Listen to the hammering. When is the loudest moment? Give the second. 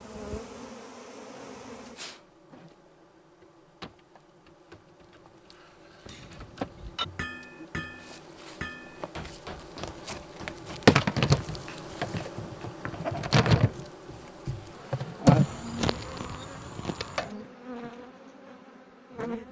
7 s.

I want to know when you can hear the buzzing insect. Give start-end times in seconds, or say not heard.
0.0-19.4.